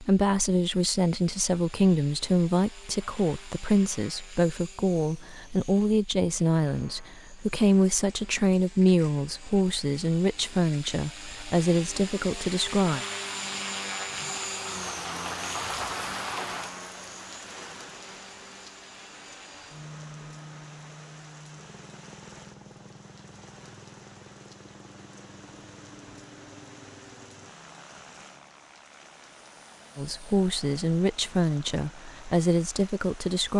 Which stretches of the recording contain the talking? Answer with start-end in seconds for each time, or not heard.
0.0-13.0, 29.9-33.5.